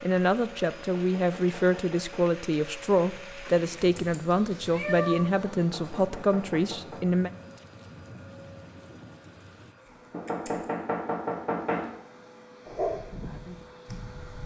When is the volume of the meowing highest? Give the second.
5 s.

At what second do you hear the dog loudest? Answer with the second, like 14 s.
13 s.